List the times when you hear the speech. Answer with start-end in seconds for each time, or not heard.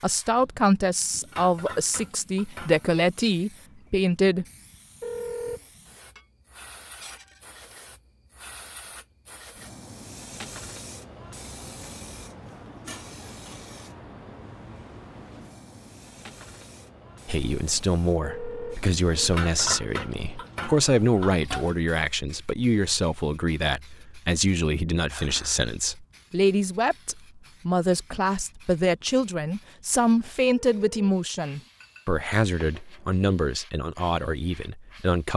0.0-4.5, 17.2-35.3.